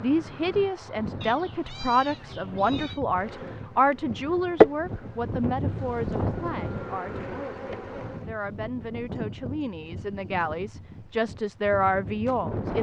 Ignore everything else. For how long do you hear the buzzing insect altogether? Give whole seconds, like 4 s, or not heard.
5 s.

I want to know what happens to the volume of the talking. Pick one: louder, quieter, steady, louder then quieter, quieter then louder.
quieter then louder.